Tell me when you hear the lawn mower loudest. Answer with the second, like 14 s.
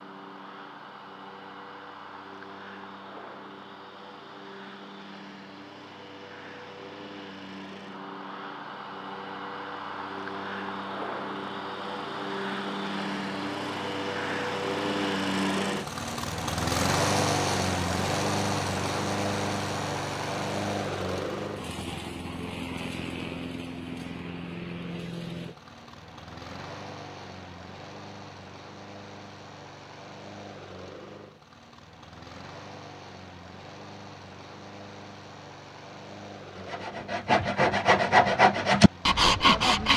17 s.